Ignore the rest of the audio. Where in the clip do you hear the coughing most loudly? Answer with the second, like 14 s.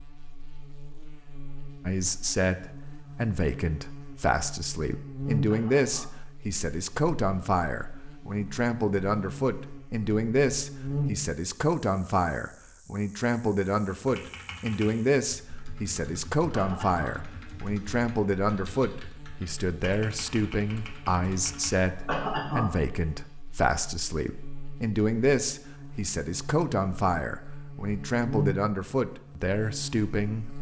22 s.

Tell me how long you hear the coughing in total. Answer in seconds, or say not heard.
2 s.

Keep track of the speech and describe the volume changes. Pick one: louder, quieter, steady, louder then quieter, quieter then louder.
steady.